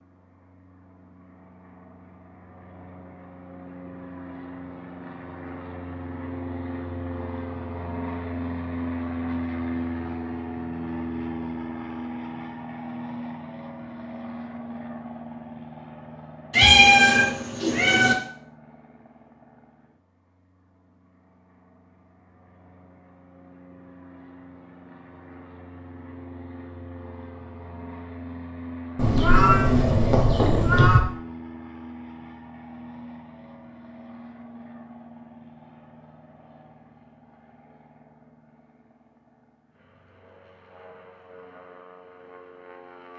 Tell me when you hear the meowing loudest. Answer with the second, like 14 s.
17 s.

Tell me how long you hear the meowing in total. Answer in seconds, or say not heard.
4 s.